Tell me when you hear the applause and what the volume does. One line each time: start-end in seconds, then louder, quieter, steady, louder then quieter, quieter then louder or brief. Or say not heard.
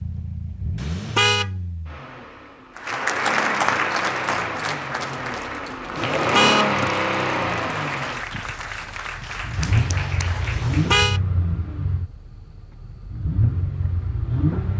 2.8-11.0 quieter.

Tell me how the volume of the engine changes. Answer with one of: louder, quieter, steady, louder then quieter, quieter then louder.
louder then quieter.